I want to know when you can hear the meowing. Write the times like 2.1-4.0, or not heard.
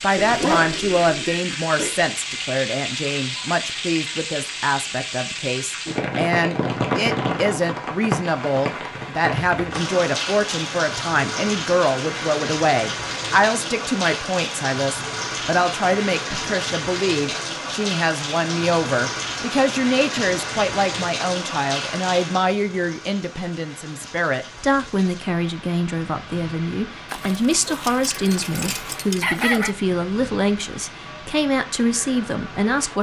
not heard.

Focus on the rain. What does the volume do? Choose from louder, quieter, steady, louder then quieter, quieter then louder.
quieter.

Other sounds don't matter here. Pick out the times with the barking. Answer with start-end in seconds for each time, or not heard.
0.1-2.0, 27.1-29.8.